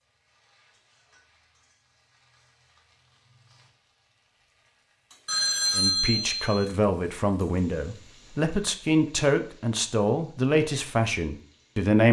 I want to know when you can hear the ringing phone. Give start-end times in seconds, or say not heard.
5.2-6.7.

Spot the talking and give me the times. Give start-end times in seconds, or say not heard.
5.8-12.0.